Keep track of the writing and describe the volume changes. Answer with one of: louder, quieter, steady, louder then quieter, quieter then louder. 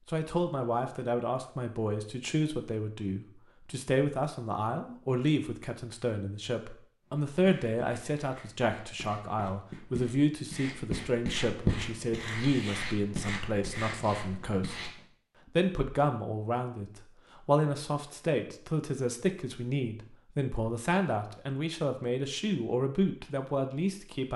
louder then quieter.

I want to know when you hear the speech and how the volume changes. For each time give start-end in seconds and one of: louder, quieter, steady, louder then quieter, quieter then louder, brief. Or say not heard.
0.1-14.9 steady
15.6-24.3 steady.